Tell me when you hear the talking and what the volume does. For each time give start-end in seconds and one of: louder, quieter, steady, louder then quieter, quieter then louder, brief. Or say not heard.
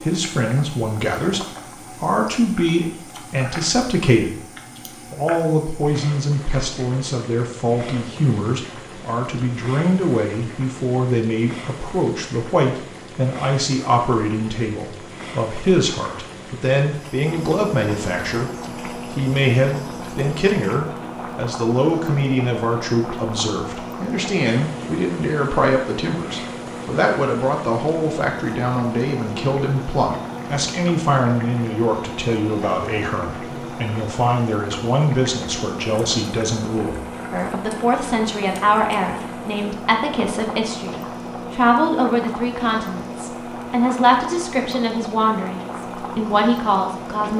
0.0-47.3 steady.